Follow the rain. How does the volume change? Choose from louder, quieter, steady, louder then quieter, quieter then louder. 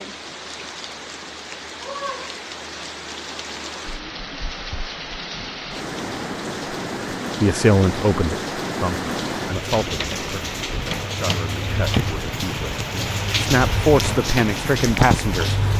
louder.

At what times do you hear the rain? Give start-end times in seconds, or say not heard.
0.0-15.7.